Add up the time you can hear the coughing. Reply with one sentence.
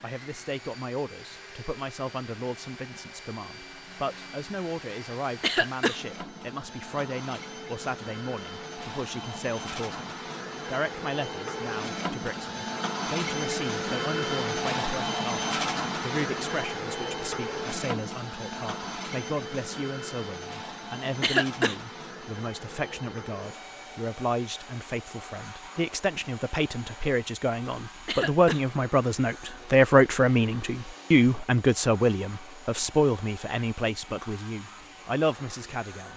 The coughing can be heard for 2 seconds in total.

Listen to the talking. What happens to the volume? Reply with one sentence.
The loudness of the talking goes up.